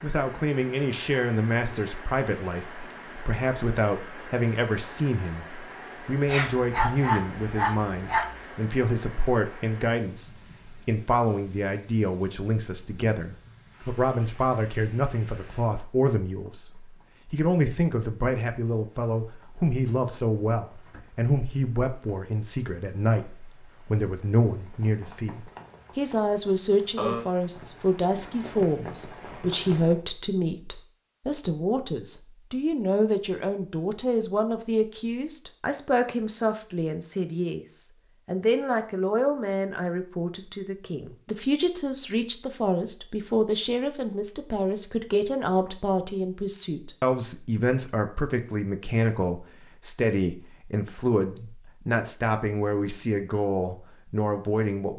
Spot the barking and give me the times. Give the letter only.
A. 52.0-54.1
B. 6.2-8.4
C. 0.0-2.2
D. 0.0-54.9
B.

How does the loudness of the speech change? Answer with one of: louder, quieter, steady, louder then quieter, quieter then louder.
steady.